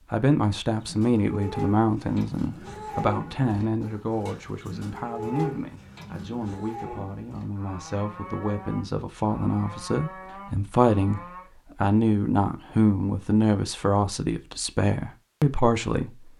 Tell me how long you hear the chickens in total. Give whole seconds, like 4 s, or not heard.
not heard.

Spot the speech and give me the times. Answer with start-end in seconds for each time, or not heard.
0.1-16.3.